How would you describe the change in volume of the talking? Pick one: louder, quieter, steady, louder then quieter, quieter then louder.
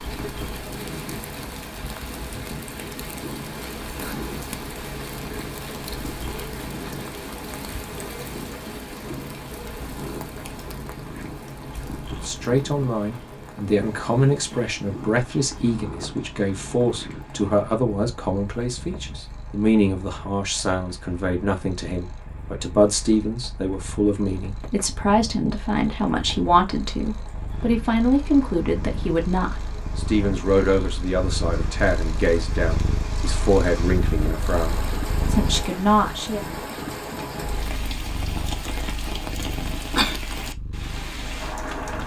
steady.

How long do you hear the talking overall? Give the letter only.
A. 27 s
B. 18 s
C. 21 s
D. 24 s
D.